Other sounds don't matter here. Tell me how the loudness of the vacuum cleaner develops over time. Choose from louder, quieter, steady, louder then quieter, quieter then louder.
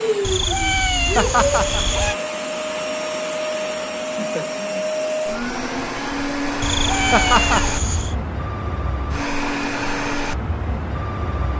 steady.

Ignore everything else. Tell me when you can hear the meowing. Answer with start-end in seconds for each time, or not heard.
0.2-2.1, 6.6-8.2.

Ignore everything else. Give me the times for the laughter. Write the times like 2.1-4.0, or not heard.
1.1-1.9, 7.1-7.7.